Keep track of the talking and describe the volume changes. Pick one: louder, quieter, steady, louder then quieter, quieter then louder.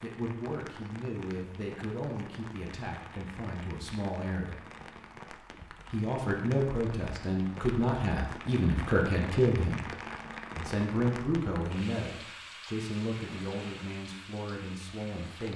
louder then quieter.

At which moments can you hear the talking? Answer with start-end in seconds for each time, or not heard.
0.0-4.6, 5.8-9.8, 10.6-15.5.